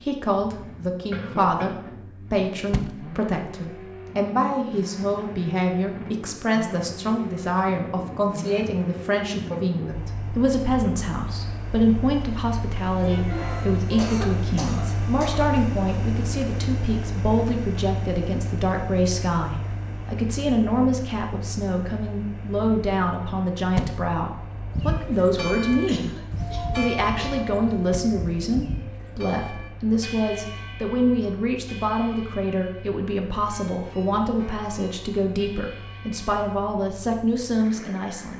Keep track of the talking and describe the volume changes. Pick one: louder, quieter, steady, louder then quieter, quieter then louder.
steady.